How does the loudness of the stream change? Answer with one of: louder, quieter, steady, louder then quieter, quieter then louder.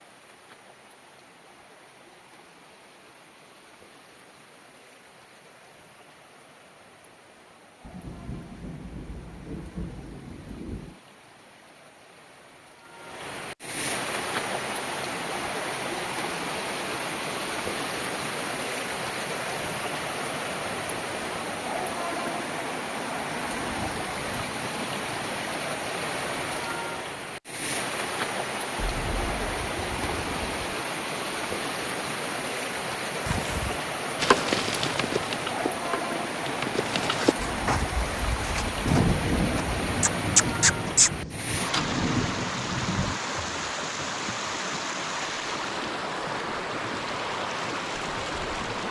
louder.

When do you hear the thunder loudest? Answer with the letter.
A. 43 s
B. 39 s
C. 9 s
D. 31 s
B.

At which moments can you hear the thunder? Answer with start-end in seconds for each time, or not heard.
7.8-10.9, 28.8-30.8, 38.9-43.2.